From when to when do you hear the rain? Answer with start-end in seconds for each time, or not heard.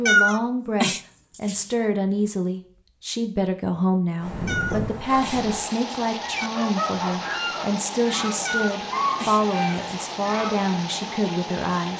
5.0-11.9.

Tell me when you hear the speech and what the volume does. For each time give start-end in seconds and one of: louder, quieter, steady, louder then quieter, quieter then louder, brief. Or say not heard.
0.0-11.9 steady.